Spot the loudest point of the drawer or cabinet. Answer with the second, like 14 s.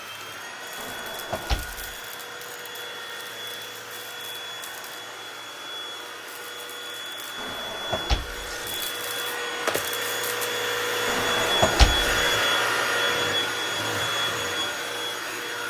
12 s.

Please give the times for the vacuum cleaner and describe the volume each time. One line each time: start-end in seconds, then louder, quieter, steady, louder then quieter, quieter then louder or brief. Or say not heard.
0.0-15.6 louder.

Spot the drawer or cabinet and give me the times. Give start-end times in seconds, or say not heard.
0.8-1.9, 7.3-8.8, 11.1-12.1.